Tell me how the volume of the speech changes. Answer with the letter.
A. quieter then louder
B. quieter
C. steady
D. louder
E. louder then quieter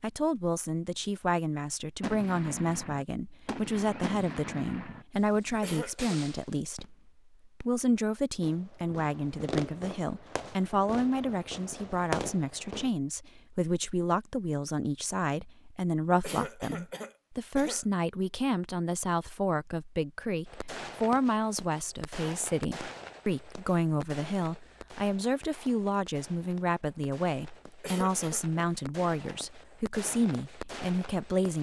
C.